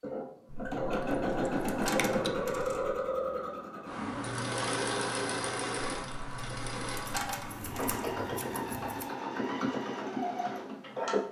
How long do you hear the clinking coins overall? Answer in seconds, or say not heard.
5 s.